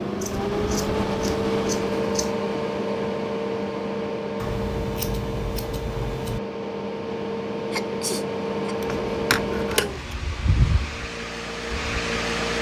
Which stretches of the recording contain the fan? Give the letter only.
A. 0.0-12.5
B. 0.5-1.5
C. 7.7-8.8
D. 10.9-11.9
A.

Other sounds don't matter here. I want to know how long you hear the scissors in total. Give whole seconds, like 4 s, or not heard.
6 s.